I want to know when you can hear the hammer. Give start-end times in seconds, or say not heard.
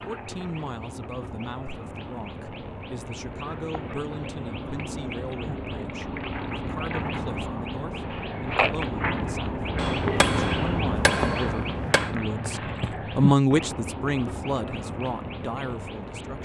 9.8-12.2.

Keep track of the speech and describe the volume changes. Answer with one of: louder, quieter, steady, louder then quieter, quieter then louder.
louder then quieter.